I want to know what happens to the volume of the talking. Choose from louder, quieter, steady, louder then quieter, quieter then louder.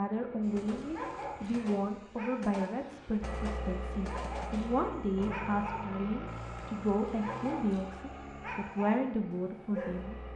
steady.